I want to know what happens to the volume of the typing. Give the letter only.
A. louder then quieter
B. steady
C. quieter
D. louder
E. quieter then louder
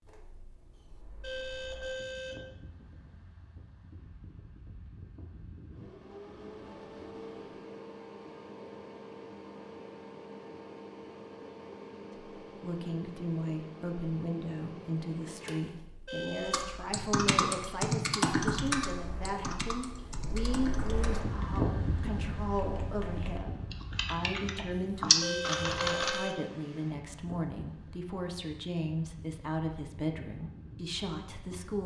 E.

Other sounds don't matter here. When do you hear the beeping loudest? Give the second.
26 s.